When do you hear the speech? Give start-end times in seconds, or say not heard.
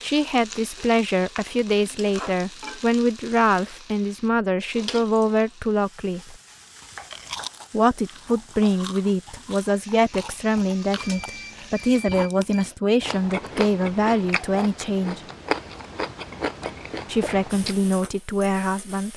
0.0-6.3, 7.7-15.2, 17.1-19.1.